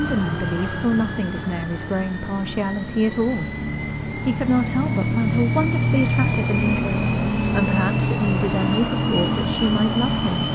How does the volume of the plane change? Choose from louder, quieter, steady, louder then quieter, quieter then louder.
louder.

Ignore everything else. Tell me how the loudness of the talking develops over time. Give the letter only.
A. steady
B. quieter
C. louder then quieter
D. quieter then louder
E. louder
A.